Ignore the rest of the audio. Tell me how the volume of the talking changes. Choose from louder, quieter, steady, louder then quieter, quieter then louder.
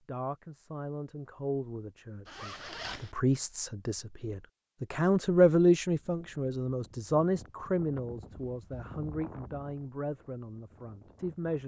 louder then quieter.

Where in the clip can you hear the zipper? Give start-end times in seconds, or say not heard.
2.2-3.1.